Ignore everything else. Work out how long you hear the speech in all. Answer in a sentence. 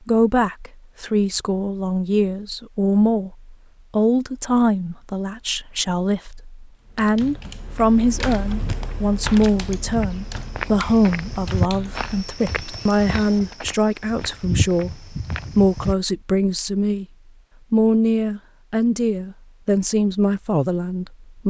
You can hear the speech for 21 seconds altogether.